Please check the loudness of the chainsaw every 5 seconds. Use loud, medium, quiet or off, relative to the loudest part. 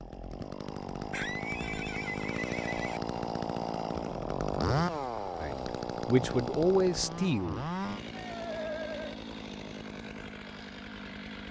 loud, loud, medium.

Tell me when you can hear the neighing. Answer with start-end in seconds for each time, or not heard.
1.1-3.0, 8.1-9.2.